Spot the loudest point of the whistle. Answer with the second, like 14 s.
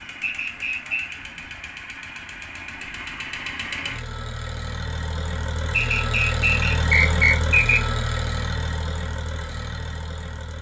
7 s.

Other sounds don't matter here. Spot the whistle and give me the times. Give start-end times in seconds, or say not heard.
0.2-1.2, 5.7-7.8.